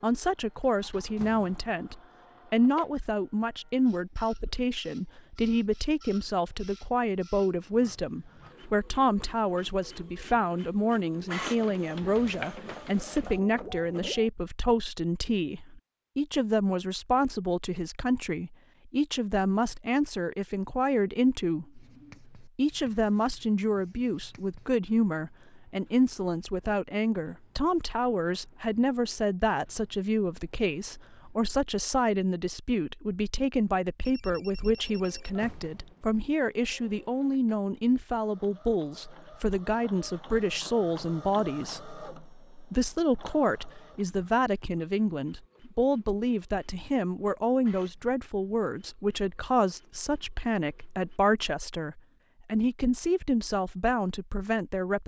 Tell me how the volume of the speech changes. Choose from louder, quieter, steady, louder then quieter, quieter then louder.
steady.